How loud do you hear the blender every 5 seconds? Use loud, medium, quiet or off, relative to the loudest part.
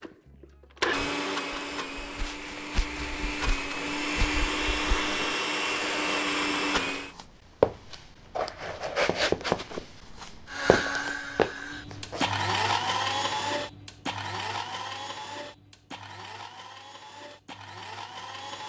loud, loud, loud, quiet.